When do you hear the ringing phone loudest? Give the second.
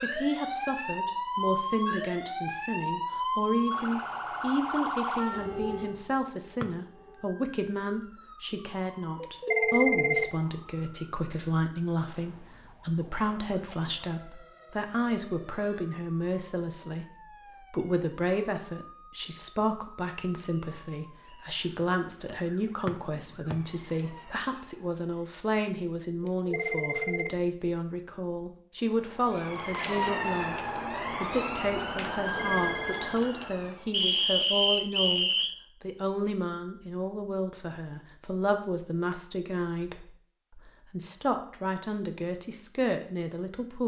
10 s.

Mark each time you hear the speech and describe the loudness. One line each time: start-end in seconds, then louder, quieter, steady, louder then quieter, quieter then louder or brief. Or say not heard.
0.0-43.8 steady.